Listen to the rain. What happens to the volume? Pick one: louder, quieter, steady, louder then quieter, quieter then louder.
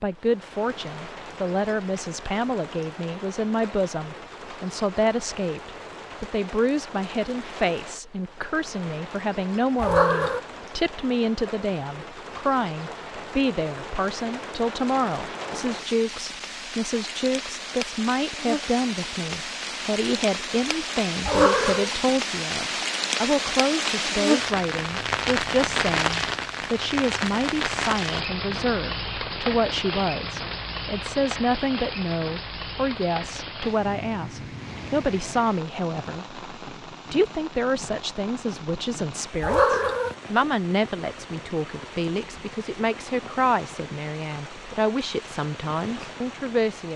louder then quieter.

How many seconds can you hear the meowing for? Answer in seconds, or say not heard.
2 s.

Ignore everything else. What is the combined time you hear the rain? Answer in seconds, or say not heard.
47 s.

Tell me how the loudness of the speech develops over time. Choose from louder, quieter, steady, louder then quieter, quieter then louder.
steady.